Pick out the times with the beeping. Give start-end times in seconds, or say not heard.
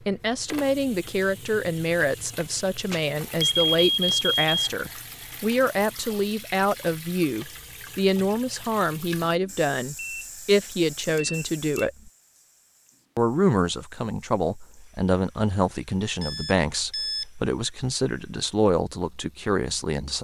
2.9-4.7, 9.9-11.8, 16.2-17.2.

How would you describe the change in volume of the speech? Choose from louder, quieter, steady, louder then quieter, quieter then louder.
steady.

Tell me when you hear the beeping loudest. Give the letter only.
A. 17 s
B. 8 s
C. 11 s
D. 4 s
D.